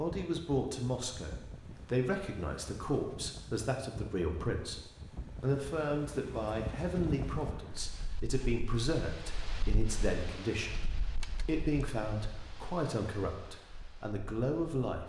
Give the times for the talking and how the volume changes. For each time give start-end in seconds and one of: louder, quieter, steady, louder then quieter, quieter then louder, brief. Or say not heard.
0.0-15.0 steady.